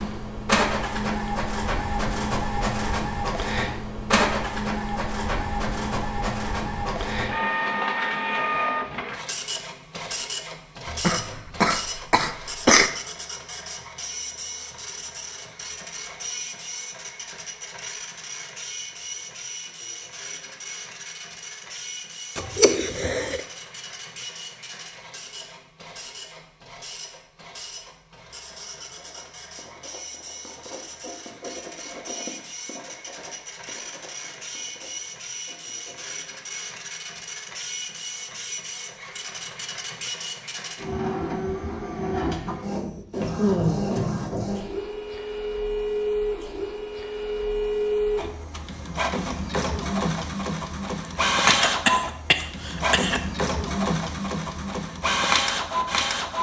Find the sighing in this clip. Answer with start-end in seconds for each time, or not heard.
43.4-44.1.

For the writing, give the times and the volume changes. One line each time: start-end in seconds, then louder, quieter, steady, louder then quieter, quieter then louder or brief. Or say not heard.
28.9-36.2 louder then quieter.